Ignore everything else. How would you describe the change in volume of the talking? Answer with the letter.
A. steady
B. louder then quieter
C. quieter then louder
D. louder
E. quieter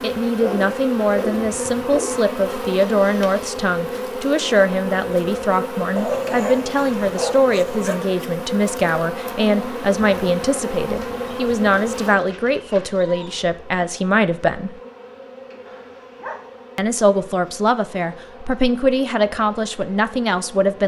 A.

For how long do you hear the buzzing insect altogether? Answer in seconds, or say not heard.
21 s.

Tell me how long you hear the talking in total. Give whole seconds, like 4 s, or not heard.
19 s.